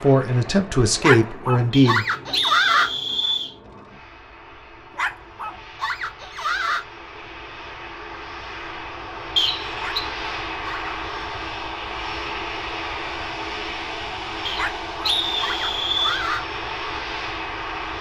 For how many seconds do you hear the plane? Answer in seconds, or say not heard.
18 s.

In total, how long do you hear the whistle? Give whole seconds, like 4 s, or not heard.
4 s.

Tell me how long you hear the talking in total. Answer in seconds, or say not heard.
2 s.